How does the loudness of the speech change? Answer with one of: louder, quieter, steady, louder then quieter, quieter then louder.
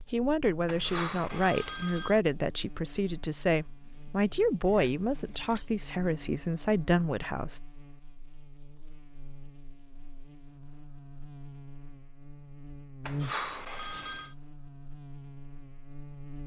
steady.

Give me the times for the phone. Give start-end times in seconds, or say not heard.
0.7-2.2, 13.1-14.3.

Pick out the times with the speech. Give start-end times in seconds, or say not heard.
0.1-7.6.